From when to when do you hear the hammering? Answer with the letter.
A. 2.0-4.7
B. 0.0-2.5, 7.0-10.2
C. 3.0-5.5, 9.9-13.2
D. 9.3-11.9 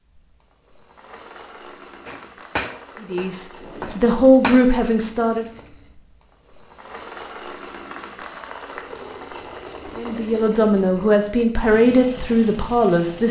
A.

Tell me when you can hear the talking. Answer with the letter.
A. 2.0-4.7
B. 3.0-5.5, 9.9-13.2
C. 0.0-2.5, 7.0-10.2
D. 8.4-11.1
B.